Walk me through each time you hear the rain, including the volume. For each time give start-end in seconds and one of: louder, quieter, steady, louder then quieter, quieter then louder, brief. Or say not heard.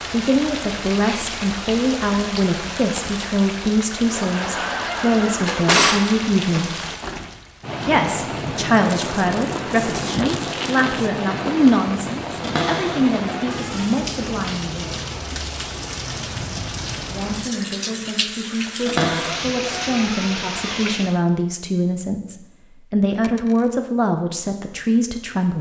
0.0-21.2 steady.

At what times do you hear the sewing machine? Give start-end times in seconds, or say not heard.
not heard.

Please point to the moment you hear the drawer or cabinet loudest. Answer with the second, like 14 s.
6 s.